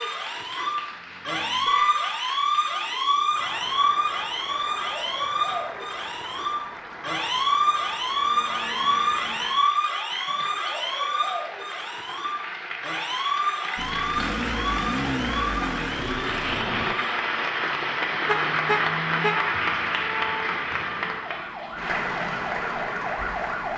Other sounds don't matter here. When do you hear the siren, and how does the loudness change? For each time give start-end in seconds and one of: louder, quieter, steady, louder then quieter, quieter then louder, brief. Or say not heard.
0.0-23.7 quieter.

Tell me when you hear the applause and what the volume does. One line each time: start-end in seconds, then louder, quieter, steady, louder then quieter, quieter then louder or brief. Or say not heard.
0.0-23.7 louder.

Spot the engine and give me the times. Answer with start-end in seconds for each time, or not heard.
13.8-16.9.